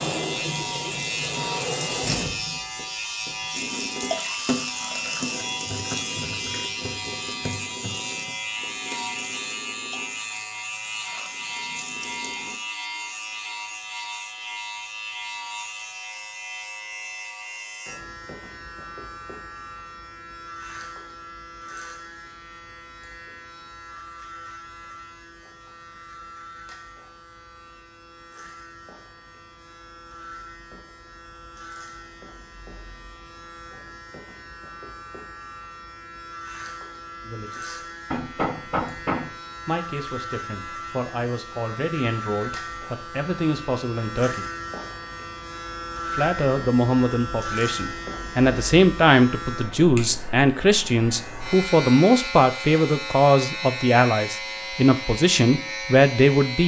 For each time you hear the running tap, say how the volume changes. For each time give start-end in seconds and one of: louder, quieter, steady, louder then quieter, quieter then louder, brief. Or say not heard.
0.0-12.6 quieter.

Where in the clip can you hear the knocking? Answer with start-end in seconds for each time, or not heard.
38.1-39.4.